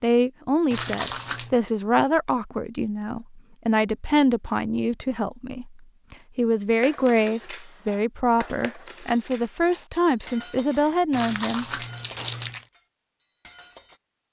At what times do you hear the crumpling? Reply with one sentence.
You can hear the crumpling from 0.7 to 1.6 s and from 11.1 to 12.7 s.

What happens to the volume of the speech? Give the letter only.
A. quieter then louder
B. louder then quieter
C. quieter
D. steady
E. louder
D.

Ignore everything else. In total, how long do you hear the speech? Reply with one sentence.
You can hear the speech for 12 seconds altogether.